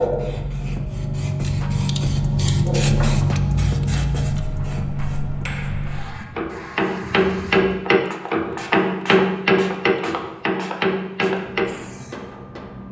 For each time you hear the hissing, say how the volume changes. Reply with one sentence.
The hissing can be heard from 0.0 to 12.8 s, getting quieter.